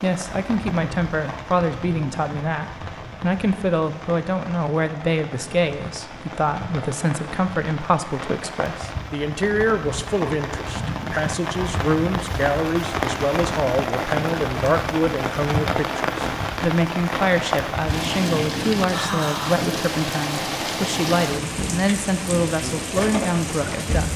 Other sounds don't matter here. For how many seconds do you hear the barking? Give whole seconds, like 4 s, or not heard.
not heard.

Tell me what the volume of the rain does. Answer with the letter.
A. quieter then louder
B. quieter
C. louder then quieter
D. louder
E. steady
D.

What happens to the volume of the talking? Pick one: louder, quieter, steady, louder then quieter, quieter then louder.
steady.